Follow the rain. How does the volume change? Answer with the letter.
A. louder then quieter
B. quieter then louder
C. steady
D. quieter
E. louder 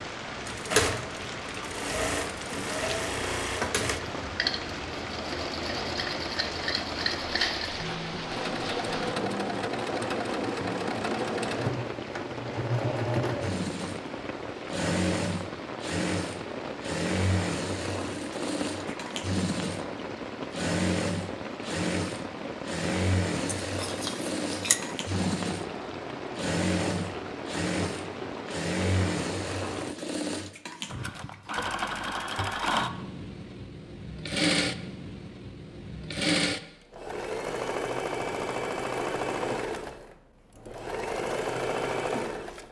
C.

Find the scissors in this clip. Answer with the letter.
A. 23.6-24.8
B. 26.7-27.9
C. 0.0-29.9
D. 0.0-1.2
A.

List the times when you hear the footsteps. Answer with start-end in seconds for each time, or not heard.
not heard.